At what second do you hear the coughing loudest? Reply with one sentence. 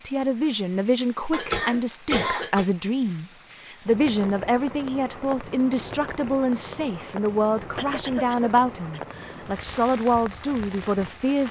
The volume of the coughing peaks at 2 seconds.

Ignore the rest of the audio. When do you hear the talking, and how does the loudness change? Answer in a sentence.
You can hear the talking from 0.0 to 11.4 s, at a steady volume.